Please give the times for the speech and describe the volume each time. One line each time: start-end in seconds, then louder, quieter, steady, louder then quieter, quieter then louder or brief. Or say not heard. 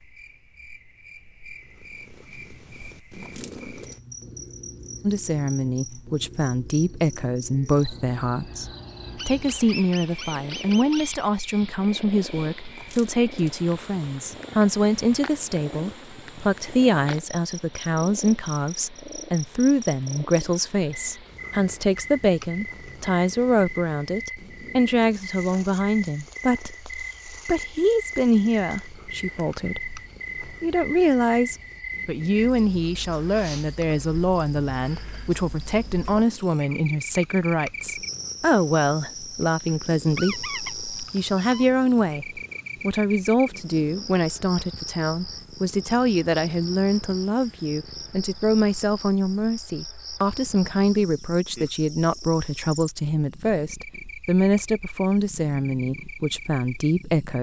5.0-57.3 steady.